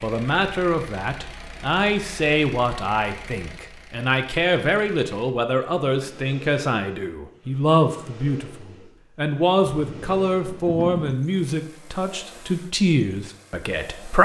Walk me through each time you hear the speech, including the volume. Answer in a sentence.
The speech can be heard from 0.0 to 14.2 s, at a steady volume.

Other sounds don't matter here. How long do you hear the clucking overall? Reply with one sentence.
You can't hear the clucking here.